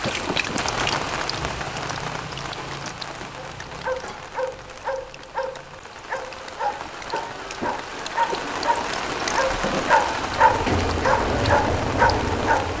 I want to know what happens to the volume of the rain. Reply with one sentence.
The volume of the rain goes down, then up.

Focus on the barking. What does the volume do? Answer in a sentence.
The loudness of the barking goes up.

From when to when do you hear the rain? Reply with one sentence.
You can hear the rain from 0.0 to 12.7 s.